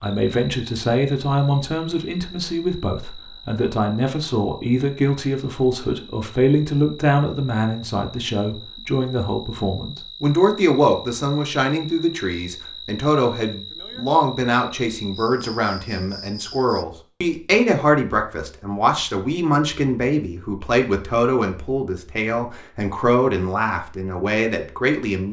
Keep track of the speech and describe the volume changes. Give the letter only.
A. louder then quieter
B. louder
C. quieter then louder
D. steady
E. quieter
D.